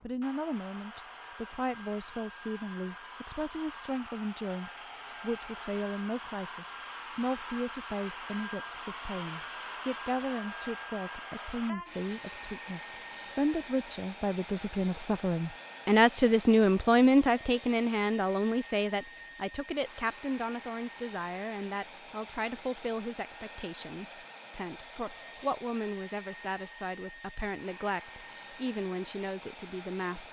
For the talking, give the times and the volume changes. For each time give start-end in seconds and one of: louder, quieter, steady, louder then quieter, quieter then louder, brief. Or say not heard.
0.0-30.2 louder then quieter.